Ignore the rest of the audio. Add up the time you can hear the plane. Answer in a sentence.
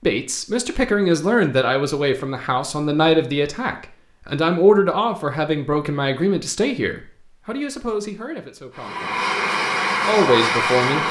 The plane can be heard for 2 seconds in total.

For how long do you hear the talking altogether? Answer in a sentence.
You can hear the talking for 10 seconds altogether.